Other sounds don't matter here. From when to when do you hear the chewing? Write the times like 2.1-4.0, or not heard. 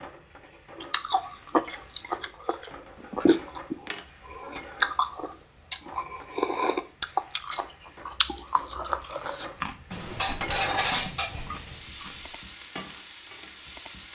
0.8-12.3.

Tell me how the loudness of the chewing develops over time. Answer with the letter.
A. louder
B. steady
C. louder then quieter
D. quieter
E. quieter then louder
D.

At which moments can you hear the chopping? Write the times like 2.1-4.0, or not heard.
not heard.